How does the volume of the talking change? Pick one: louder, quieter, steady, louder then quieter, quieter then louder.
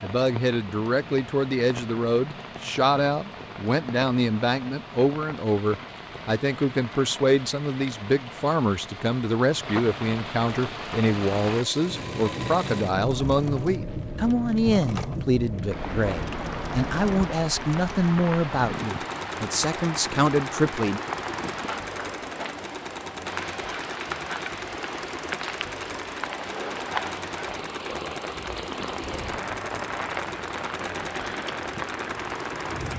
steady.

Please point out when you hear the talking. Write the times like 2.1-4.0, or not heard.
0.0-21.0.